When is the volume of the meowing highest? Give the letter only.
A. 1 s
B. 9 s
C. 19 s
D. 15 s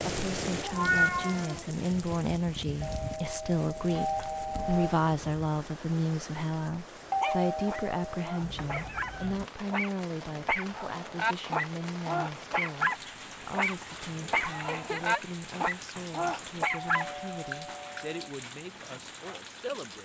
A.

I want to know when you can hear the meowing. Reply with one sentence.
You can hear the meowing from 0.6 to 1.6 s, from 8.4 to 9.4 s and from 14.2 to 15.2 s.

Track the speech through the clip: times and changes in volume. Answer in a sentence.
The speech can be heard from 0.1 to 20.0 s, getting quieter.